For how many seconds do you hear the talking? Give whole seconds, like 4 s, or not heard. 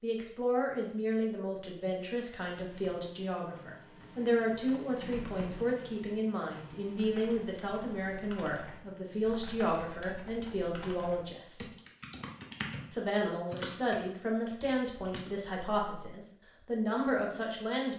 17 s.